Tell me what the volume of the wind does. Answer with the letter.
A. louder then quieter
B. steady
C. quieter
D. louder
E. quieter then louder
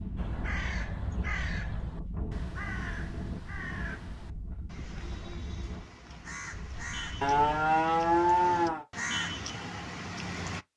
C.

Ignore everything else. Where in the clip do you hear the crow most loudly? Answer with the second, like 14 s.
9 s.